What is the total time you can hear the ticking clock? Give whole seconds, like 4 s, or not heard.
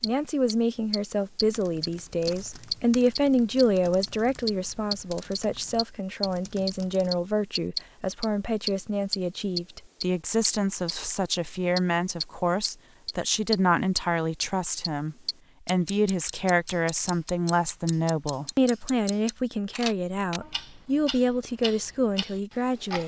23 s.